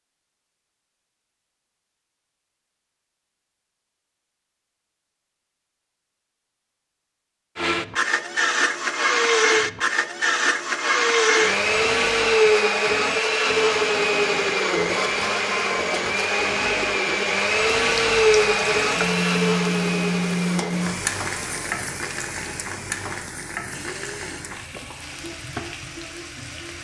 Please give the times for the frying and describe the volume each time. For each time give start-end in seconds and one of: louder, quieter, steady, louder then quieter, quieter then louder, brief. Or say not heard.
17.8-26.7 quieter.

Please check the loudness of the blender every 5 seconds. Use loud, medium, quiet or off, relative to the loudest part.
off, loud, loud, loud, quiet, quiet.